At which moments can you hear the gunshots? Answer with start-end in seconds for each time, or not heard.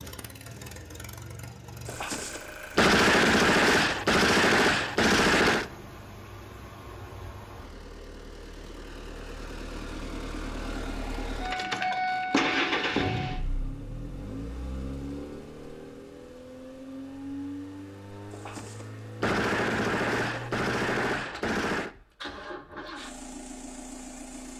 1.9-5.7, 18.3-21.9.